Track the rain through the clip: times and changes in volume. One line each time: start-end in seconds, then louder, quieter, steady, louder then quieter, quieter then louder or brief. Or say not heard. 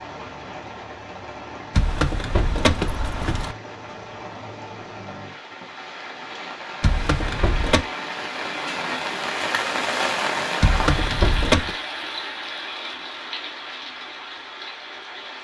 0.0-15.3 louder then quieter.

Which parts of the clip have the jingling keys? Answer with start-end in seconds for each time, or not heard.
1.7-3.5, 6.8-7.8, 10.6-11.8.